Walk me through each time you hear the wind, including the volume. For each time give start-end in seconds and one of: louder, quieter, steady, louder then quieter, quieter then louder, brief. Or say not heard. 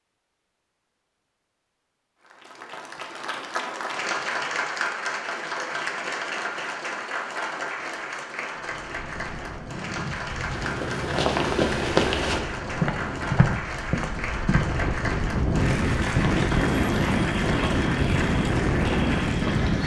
8.5-19.8 louder.